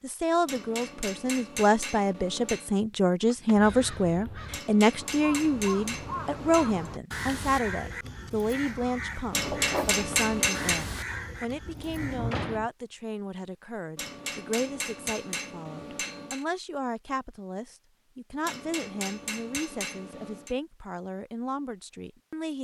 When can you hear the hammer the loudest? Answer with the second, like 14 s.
10 s.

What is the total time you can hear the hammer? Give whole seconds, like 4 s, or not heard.
11 s.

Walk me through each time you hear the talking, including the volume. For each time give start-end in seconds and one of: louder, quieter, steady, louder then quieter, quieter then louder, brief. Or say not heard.
0.0-22.5 quieter.